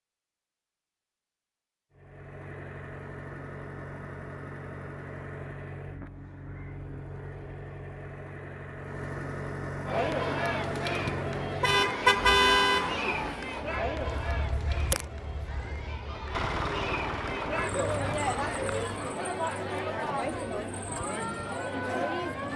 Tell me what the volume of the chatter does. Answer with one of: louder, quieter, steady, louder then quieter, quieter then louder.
quieter then louder.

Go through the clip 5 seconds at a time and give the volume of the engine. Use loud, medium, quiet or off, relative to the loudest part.
medium, loud, loud, loud, off.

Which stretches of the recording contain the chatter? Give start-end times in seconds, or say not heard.
9.8-22.5.